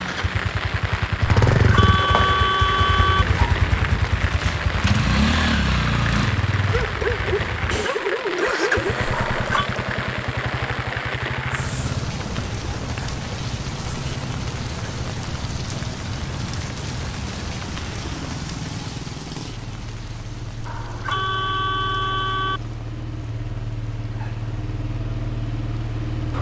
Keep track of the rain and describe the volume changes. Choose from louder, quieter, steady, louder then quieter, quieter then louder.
quieter.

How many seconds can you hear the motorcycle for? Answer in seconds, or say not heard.
26 s.